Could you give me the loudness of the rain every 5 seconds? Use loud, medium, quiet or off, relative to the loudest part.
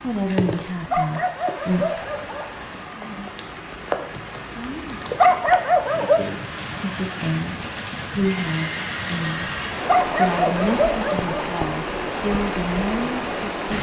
medium, loud, loud.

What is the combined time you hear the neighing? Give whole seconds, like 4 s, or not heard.
2 s.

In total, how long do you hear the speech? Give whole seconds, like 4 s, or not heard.
8 s.